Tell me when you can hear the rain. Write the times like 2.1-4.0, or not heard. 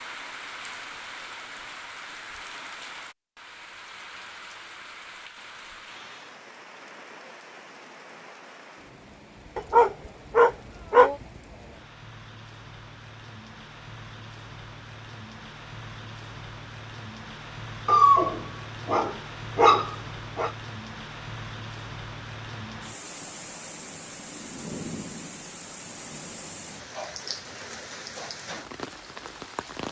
0.0-29.8.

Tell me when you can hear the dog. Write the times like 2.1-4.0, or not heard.
9.6-11.2, 17.9-20.5.